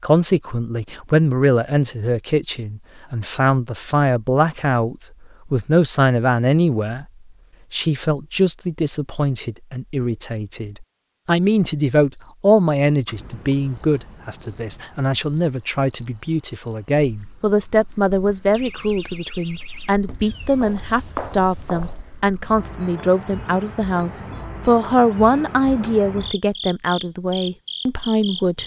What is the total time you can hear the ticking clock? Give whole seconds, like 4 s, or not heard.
not heard.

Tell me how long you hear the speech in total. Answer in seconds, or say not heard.
28 s.